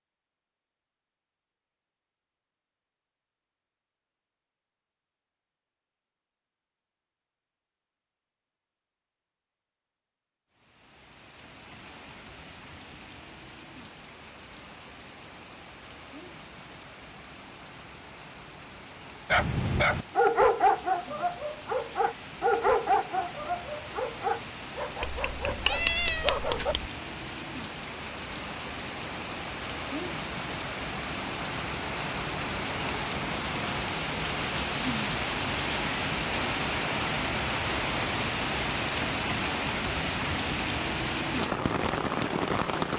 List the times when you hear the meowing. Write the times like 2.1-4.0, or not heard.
25.0-26.9.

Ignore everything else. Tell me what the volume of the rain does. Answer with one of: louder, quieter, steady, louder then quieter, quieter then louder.
louder.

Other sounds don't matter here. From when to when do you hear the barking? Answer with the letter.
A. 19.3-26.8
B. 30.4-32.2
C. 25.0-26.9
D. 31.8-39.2
A.